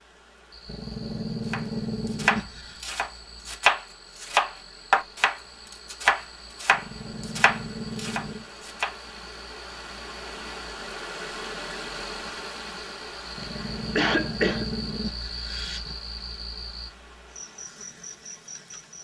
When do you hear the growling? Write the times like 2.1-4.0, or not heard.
0.7-2.8, 6.7-8.4, 13.3-15.9.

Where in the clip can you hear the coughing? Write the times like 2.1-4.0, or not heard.
13.4-14.7.